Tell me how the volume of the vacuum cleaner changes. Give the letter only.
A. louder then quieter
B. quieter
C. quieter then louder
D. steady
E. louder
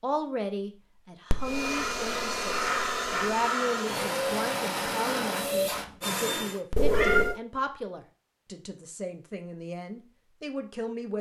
D.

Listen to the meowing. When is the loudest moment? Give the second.
7 s.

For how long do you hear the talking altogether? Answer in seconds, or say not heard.
11 s.